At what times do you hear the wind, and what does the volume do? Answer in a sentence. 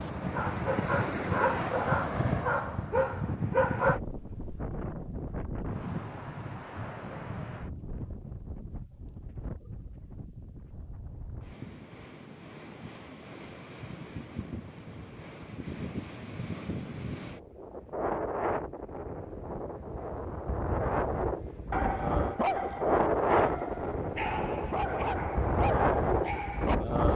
The wind can be heard from 0.0 to 27.1 s, getting quieter then louder.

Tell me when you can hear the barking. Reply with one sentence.
The barking can be heard from 0.0 to 4.0 s and from 21.7 to 26.8 s.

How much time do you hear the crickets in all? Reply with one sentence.
The crickets can't be heard in this clip.